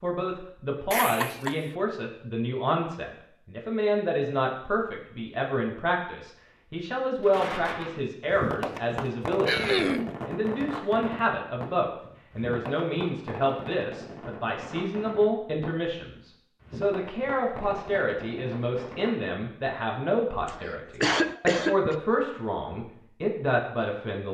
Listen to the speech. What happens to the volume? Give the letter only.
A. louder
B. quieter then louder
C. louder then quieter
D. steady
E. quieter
D.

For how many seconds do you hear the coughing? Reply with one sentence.
You can hear the coughing for 3 seconds altogether.